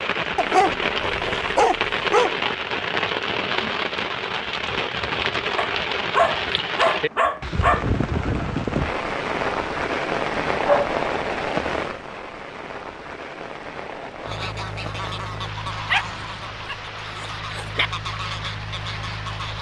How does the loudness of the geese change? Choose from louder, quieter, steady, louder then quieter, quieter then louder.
quieter then louder.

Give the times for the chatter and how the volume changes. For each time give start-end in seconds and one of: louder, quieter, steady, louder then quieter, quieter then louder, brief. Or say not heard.
not heard.